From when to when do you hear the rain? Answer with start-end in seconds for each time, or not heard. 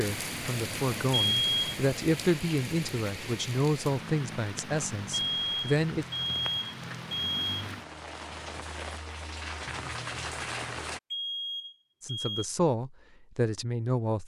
0.0-11.0.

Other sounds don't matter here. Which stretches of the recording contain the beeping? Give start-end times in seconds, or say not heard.
1.1-1.8, 5.1-7.5, 11.1-12.4.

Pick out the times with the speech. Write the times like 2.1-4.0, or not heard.
0.0-6.0, 12.0-14.2.